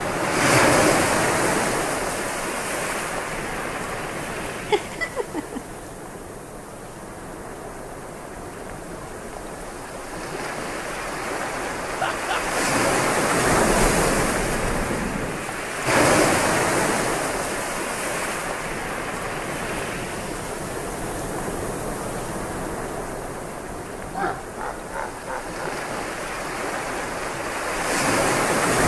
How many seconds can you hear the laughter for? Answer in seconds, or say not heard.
3 s.